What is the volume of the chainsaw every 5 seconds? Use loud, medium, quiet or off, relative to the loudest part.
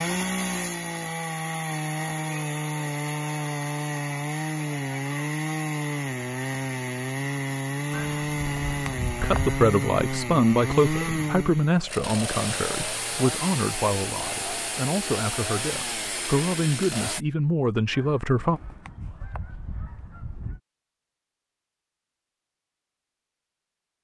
loud, loud, loud, loud, off.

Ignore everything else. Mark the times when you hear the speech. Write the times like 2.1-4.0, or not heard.
9.2-18.6.